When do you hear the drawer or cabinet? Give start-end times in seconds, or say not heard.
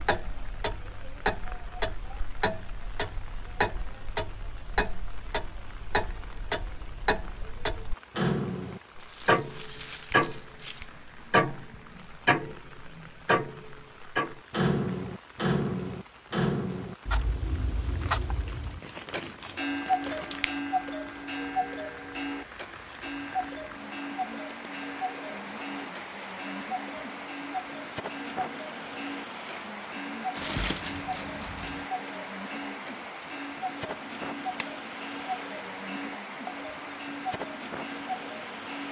not heard.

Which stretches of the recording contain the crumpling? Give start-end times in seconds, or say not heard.
9.0-10.9, 18.0-20.5, 30.4-31.9.